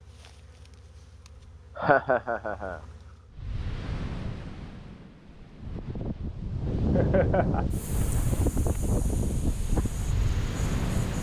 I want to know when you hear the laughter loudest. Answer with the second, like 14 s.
2 s.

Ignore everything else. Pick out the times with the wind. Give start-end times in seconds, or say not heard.
3.3-11.1.